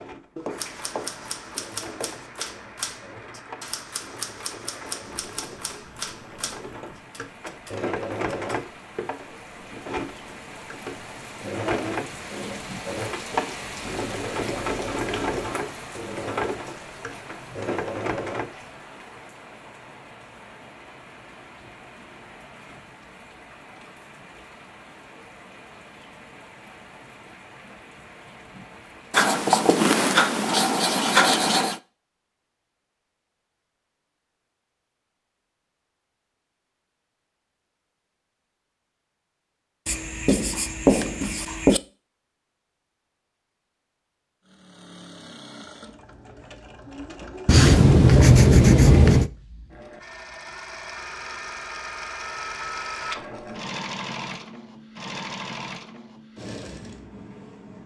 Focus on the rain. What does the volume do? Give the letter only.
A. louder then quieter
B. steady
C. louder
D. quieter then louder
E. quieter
A.